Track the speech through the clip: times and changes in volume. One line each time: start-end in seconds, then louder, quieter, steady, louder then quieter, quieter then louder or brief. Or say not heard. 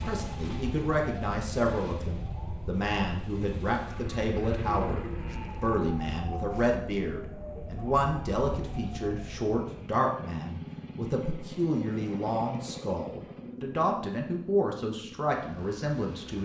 0.0-16.4 steady.